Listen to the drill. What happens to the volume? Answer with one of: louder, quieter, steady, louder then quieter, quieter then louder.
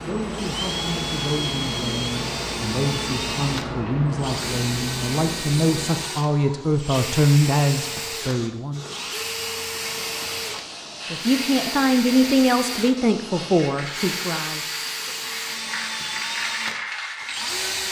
steady.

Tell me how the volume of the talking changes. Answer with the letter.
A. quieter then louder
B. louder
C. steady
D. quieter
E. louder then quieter
B.